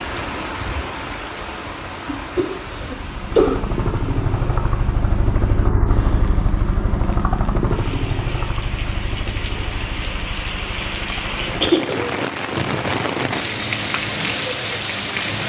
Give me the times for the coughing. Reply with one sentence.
The coughing can be heard from 2.0 to 3.6 s and from 11.6 to 12.2 s.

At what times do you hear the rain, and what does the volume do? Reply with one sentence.
The rain can be heard from 0.0 to 15.4 s, getting quieter then louder.